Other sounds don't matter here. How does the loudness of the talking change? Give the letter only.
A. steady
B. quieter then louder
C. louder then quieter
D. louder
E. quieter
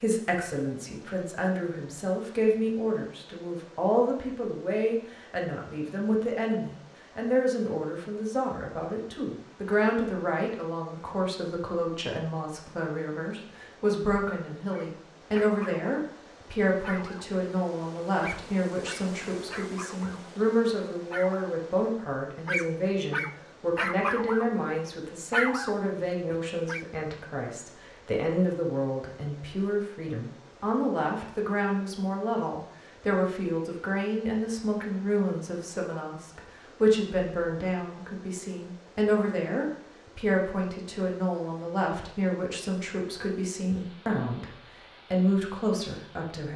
A.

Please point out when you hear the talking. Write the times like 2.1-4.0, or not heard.
0.0-46.5.